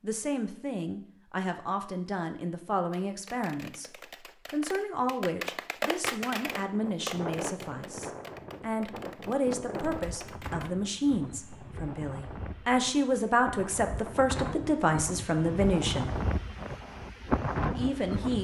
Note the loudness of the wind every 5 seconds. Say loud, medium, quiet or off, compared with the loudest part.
off, medium, medium, loud.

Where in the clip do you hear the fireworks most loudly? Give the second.
6 s.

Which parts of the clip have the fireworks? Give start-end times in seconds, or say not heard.
2.9-10.8.